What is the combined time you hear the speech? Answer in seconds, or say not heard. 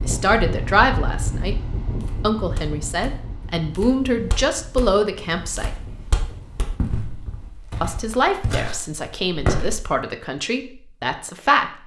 9 s.